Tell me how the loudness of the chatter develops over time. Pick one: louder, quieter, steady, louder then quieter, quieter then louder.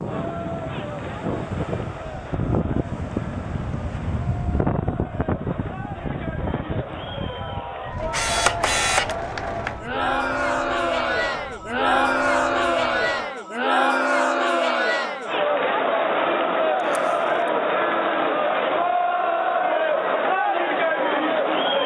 louder.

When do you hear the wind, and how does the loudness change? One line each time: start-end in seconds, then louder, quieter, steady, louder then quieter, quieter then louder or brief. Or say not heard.
0.0-13.3 quieter.